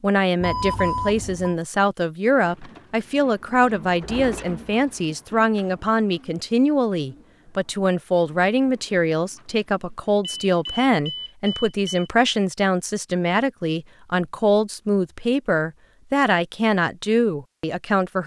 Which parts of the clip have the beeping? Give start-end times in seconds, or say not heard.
0.4-1.6, 10.4-12.1.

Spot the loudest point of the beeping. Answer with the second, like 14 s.
1 s.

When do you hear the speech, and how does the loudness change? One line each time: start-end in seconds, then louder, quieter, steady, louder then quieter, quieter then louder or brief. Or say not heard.
0.0-18.2 steady.